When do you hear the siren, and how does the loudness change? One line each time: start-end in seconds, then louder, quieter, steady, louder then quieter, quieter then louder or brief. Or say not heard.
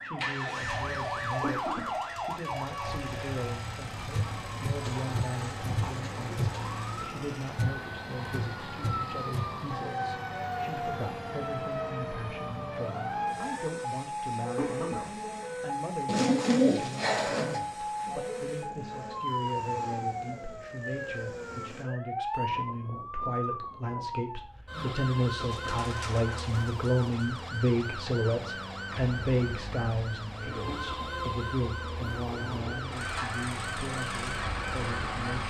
0.0-35.4 steady.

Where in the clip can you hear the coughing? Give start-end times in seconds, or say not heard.
1.4-1.9, 14.6-15.1, 30.6-31.2.